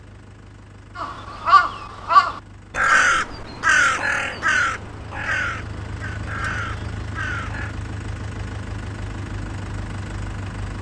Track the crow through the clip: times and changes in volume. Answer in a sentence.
You can hear the crow from 0.9 to 7.8 s, getting quieter.